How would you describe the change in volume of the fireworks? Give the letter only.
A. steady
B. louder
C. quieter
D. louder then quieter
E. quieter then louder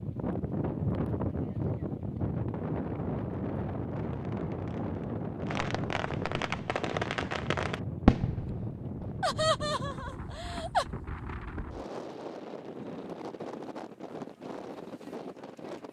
D.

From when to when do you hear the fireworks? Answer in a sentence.
The fireworks can be heard from 3.9 to 10.3 s.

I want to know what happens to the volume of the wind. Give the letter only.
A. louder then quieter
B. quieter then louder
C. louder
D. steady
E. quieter
E.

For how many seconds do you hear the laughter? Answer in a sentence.
You can hear the laughter for 2 seconds altogether.